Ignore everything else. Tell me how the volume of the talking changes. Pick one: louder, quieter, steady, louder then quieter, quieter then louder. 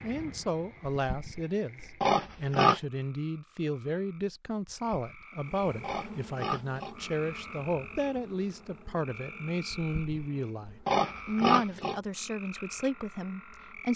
steady.